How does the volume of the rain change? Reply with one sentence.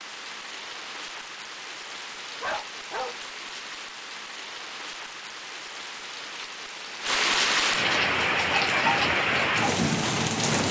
The volume of the rain goes up.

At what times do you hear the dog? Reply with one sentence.
The dog can be heard from 2.4 to 3.1 s.